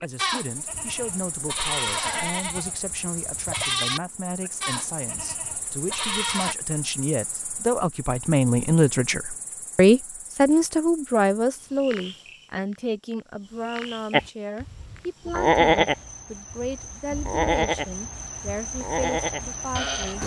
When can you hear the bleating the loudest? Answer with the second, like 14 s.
16 s.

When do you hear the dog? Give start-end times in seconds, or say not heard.
not heard.